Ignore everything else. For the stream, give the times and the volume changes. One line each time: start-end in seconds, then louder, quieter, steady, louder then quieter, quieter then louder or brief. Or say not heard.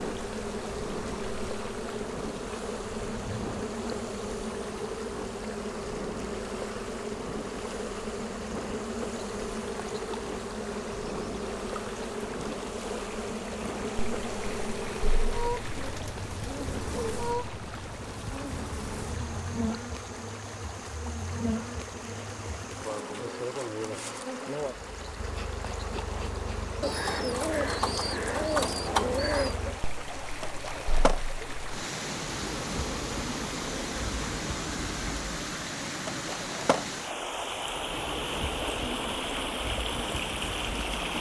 0.0-41.1 louder.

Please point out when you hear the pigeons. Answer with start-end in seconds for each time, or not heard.
15.6-17.2, 26.8-29.6.